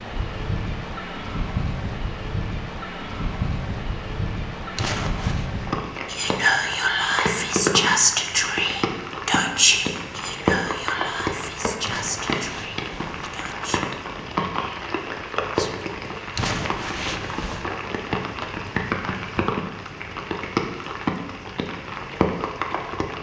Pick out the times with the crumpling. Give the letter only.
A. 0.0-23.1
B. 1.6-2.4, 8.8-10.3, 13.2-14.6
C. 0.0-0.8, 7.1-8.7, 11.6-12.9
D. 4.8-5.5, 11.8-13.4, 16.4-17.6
D.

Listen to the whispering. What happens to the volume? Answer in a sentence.
The loudness of the whispering goes down.